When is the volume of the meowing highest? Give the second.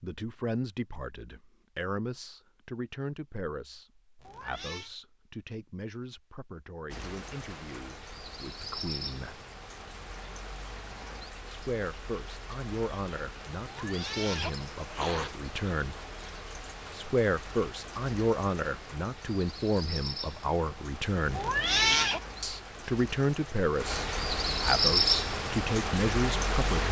22 s.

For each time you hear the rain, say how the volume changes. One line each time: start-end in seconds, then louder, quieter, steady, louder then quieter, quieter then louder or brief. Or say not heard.
6.8-26.8 louder.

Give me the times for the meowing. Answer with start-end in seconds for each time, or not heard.
4.2-4.9, 13.6-15.3, 21.3-22.2.